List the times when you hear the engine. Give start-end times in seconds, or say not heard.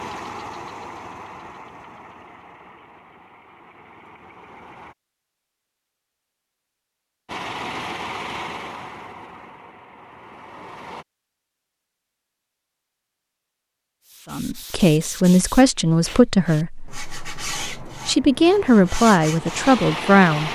0.0-5.0, 7.2-11.1, 18.6-20.4.